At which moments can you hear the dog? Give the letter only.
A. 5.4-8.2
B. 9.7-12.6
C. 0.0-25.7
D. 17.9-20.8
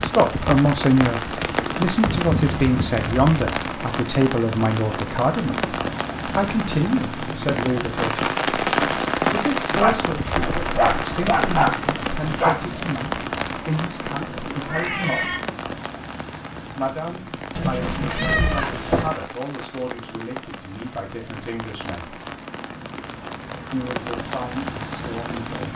B.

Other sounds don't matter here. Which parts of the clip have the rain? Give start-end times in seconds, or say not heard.
0.0-25.7.